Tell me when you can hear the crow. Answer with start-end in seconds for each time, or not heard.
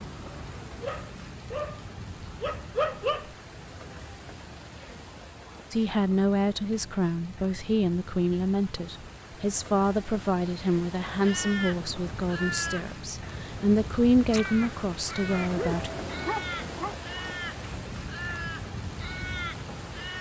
11.1-20.1.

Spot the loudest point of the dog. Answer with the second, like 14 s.
3 s.